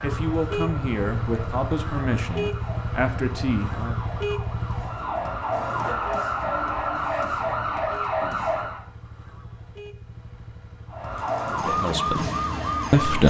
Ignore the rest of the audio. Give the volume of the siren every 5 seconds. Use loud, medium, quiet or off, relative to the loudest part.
quiet, loud, loud.